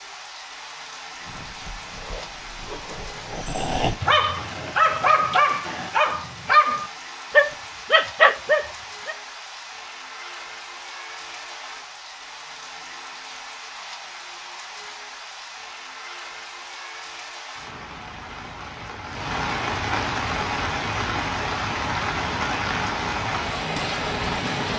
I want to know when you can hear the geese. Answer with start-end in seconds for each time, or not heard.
not heard.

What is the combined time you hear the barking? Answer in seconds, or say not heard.
8 s.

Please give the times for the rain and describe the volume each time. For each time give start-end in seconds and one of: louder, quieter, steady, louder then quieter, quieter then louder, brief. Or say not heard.
0.0-24.7 louder.